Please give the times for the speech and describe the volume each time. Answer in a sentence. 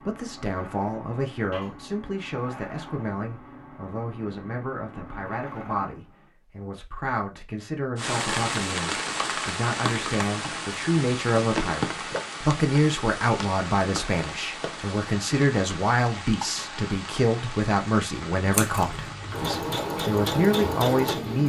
The speech can be heard from 0.0 to 21.4 s, getting louder.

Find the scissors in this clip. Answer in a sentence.
You can hear the scissors from 18.4 to 19.4 s.